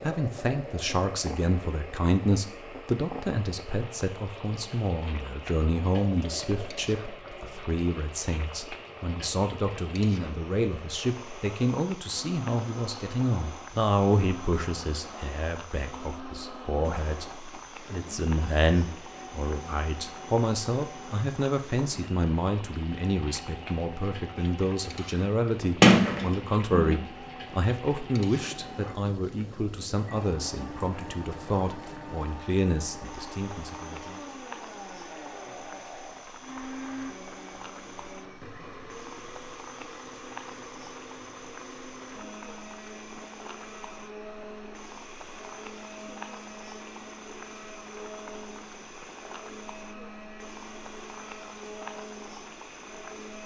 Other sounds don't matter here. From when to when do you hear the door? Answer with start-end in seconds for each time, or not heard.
25.8-26.9.